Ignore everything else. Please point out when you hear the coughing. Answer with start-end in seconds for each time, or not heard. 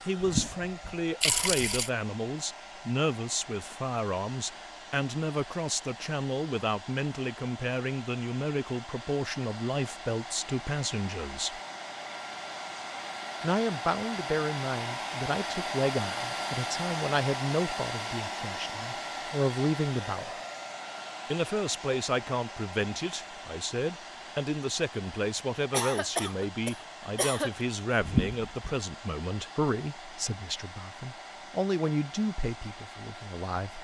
25.7-27.6.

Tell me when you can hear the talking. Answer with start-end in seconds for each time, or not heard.
0.0-11.6, 13.4-20.4, 21.3-33.8.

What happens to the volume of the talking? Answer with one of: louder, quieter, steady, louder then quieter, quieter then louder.
steady.